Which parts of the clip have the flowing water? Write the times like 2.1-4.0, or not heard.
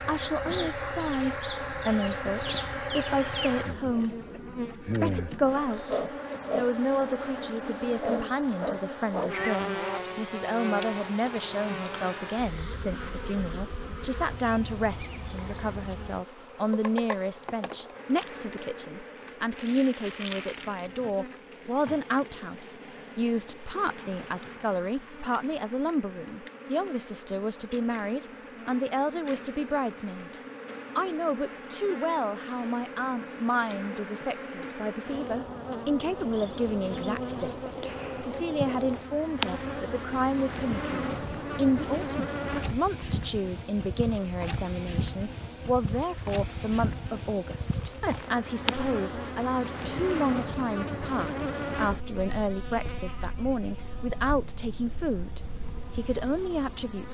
not heard.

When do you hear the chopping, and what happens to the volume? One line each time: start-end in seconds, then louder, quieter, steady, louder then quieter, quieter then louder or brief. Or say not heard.
not heard.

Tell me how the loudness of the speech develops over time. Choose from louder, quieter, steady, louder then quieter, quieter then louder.
steady.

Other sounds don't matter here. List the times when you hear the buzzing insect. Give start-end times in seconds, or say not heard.
0.0-57.0.